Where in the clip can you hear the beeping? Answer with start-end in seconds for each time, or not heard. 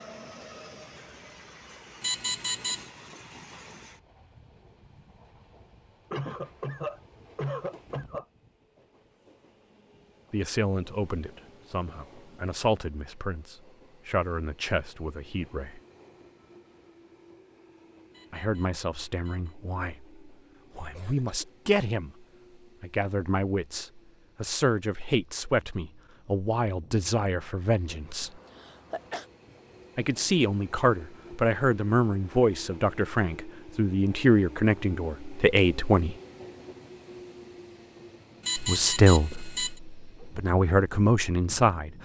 2.0-2.9, 18.1-19.6, 38.4-39.8.